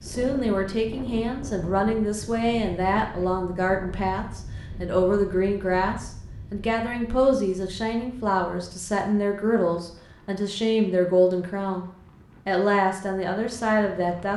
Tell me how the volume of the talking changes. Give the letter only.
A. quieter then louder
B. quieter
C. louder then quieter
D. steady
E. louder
D.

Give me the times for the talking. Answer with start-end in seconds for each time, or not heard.
0.0-14.3.